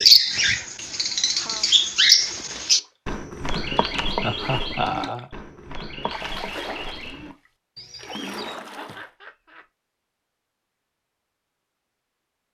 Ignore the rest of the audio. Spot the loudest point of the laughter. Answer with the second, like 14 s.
5 s.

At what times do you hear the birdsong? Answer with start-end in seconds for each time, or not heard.
0.0-8.6.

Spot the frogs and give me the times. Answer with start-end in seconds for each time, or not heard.
not heard.